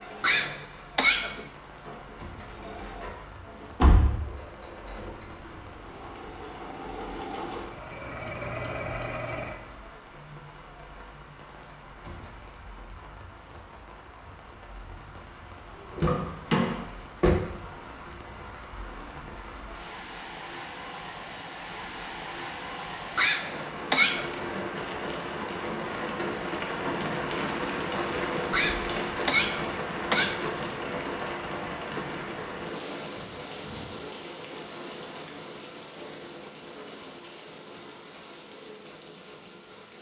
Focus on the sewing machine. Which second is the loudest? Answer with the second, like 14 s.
9 s.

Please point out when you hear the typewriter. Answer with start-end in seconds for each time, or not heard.
not heard.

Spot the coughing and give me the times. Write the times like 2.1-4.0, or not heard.
0.2-1.4, 23.1-24.2, 28.5-30.4.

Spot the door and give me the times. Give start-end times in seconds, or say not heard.
3.8-4.2, 15.9-17.4, 28.7-29.1.